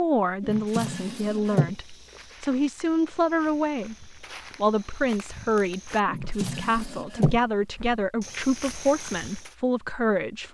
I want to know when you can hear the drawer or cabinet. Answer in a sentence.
The drawer or cabinet can be heard from 0.4 to 1.8 s and from 6.0 to 7.4 s.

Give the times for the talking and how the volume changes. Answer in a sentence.
You can hear the talking from 0.0 to 10.5 s, at a steady volume.